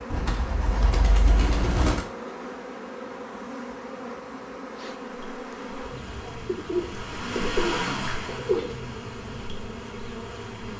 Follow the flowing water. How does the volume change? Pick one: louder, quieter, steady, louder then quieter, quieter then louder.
louder then quieter.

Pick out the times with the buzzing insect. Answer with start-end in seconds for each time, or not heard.
0.0-10.7.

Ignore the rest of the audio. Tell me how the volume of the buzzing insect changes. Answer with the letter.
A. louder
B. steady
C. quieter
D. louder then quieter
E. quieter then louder
B.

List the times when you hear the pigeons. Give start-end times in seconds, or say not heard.
0.1-2.0, 6.5-8.8.